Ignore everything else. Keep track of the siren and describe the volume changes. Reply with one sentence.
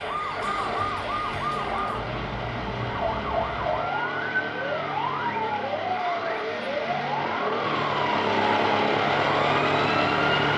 The volume of the siren stays about the same.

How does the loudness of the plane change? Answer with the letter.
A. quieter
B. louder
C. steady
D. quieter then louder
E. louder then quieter
B.